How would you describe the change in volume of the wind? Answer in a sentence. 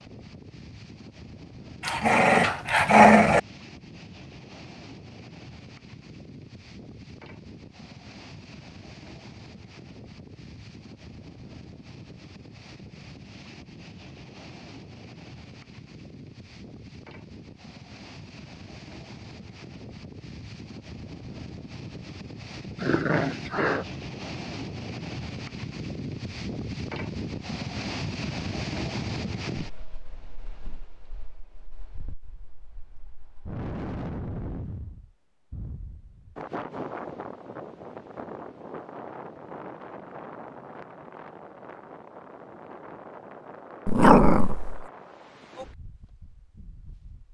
The loudness of the wind goes up, then down.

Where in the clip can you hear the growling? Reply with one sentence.
The growling can be heard from 1.8 to 3.4 s, from 22.8 to 23.9 s and from 43.9 to 44.9 s.